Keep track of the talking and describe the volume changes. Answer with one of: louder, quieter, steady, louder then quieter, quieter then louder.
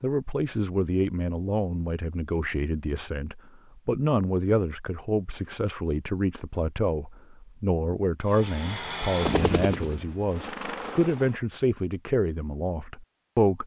steady.